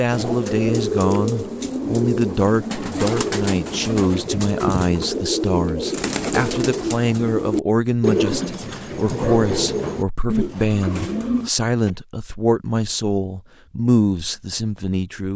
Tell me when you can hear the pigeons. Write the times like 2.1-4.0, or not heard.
0.1-11.9.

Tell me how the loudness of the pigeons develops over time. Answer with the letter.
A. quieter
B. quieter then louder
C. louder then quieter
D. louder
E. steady
E.